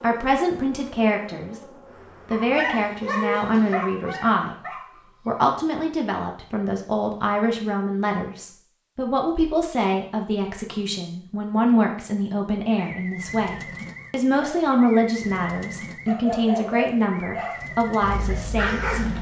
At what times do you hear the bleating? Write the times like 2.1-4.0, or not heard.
not heard.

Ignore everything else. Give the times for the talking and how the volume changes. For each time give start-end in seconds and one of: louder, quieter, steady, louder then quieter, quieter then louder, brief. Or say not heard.
0.0-1.6 brief
2.2-4.5 brief
5.2-19.1 steady.